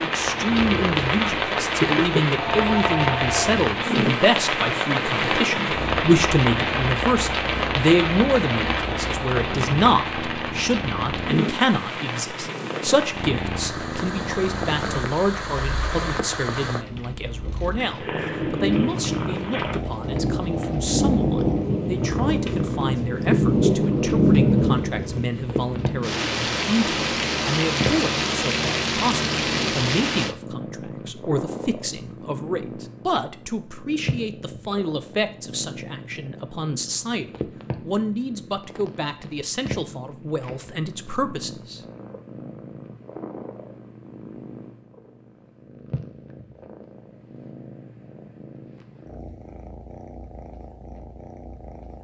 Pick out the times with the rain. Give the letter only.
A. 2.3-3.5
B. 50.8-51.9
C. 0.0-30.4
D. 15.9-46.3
C.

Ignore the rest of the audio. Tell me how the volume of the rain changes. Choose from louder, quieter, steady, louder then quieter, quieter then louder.
quieter then louder.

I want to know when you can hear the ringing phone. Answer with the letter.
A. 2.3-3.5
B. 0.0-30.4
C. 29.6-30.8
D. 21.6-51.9
A.